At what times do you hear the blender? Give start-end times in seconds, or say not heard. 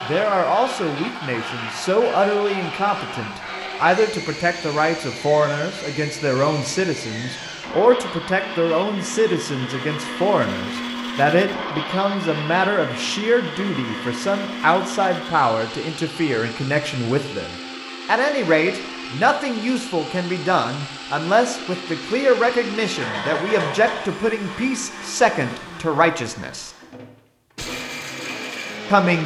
0.0-29.2.